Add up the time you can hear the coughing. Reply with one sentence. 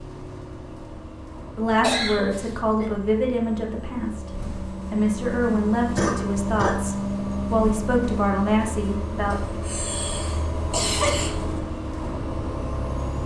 You can hear the coughing for 4 seconds altogether.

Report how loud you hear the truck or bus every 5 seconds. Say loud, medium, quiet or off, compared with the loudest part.
medium, loud, loud.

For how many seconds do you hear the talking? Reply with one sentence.
The talking can be heard for 8 seconds in total.